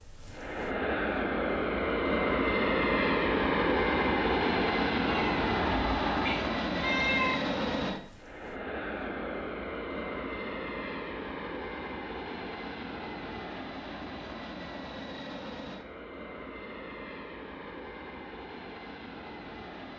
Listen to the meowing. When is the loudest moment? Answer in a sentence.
The loudest moment of the meowing is at 7 seconds.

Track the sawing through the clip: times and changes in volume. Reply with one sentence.
You can't hear the sawing here.